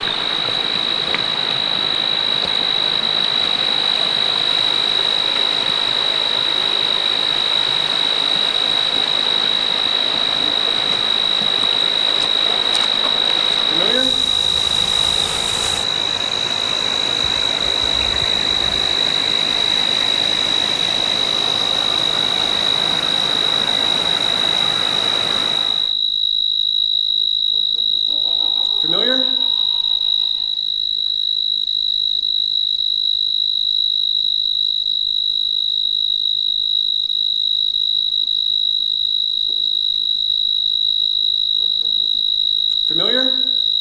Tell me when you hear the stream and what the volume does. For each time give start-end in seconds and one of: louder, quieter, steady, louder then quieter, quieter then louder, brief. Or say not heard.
0.0-25.9 steady.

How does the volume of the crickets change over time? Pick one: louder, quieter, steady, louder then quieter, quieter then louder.
steady.